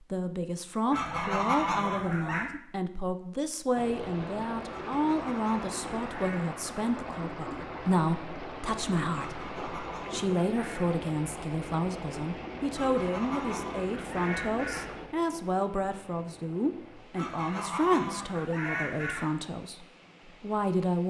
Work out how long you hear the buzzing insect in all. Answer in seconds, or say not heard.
not heard.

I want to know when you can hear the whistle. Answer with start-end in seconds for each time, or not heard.
not heard.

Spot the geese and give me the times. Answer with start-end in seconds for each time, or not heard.
0.9-2.5, 4.7-6.4, 9.2-10.8, 12.7-14.9, 17.1-19.2.